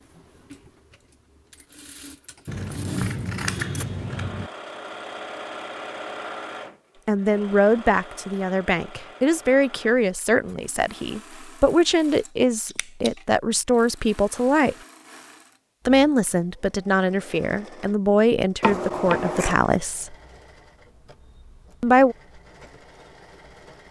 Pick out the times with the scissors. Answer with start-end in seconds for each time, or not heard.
2.5-4.5, 12.2-13.1, 18.6-19.6.